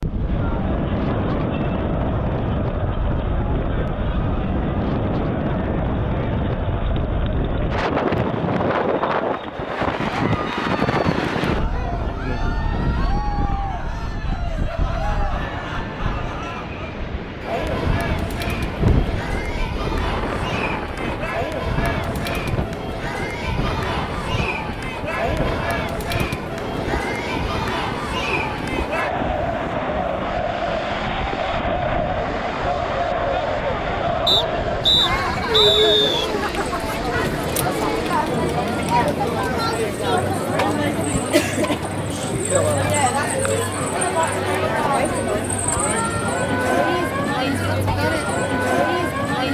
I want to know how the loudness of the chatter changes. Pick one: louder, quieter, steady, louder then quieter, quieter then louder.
louder.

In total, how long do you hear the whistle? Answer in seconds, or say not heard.
2 s.